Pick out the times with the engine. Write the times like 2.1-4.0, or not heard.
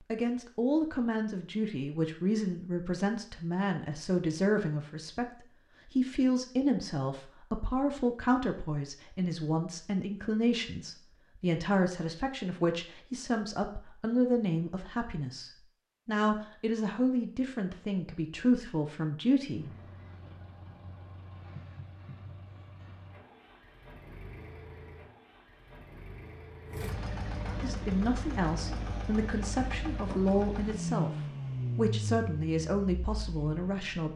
19.4-34.1.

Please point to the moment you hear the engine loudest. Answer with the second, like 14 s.
31 s.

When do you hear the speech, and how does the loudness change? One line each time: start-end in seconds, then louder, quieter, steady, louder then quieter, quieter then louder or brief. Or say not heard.
0.0-19.6 steady
27.6-34.1 steady.